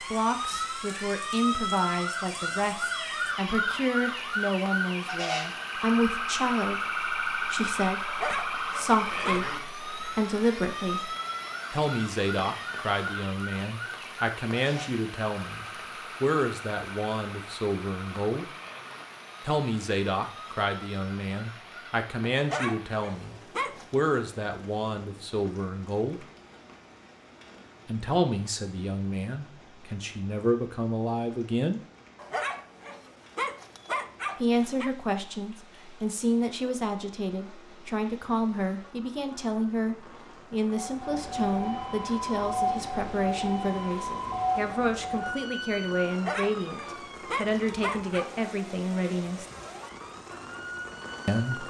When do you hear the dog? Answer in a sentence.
You can hear the dog from 8.1 to 9.6 s, from 22.4 to 23.9 s, from 32.1 to 34.9 s and from 46.1 to 48.3 s.